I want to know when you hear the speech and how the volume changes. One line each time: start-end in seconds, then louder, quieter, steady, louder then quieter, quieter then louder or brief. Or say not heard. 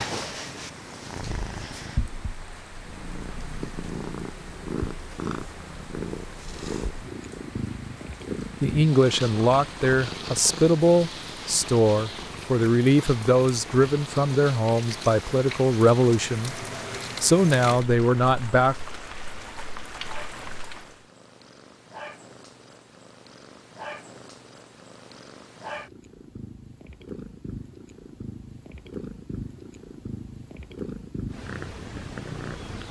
8.6-18.8 steady.